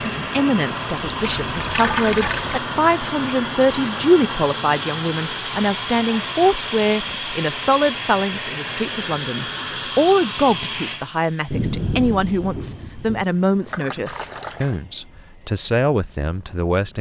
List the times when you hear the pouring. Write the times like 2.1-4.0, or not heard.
1.1-2.6, 13.7-14.8.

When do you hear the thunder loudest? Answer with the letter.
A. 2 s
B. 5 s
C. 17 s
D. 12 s
D.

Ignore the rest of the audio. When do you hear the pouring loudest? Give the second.
2 s.